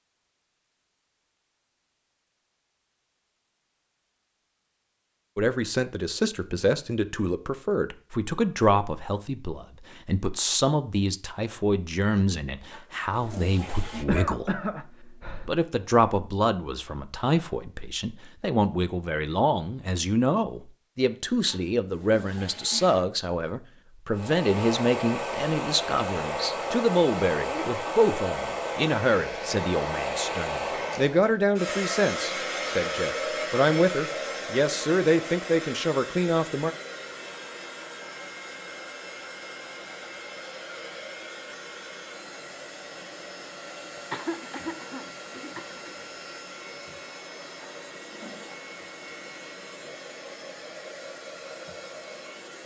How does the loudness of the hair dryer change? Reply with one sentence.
The volume of the hair dryer goes down.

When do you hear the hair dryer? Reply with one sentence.
You can hear the hair dryer from 24.1 to 52.6 s.